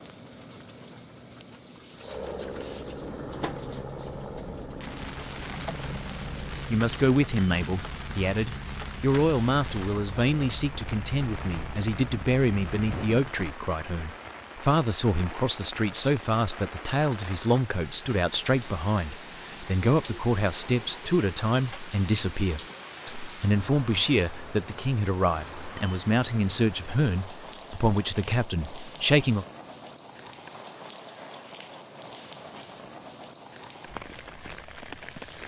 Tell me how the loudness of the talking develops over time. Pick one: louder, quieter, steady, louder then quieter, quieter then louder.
steady.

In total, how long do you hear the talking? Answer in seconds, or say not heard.
23 s.